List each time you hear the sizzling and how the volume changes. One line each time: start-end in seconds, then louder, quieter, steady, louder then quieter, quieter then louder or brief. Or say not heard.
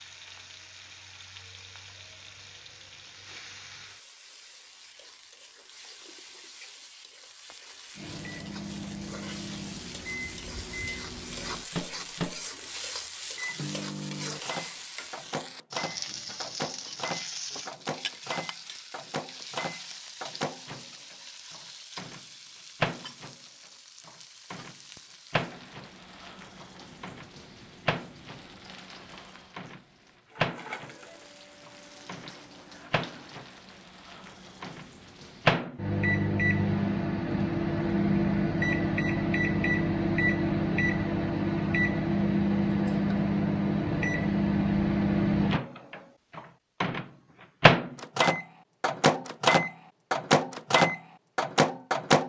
0.0-35.6 louder then quieter.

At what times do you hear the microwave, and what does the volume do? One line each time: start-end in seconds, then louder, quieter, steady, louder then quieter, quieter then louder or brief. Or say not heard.
8.0-52.2 louder.